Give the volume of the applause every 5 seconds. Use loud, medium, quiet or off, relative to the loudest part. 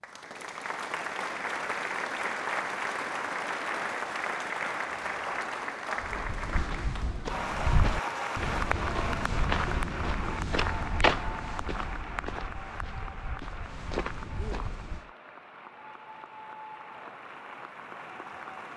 loud, loud, medium, medium.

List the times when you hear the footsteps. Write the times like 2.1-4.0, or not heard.
6.0-15.1.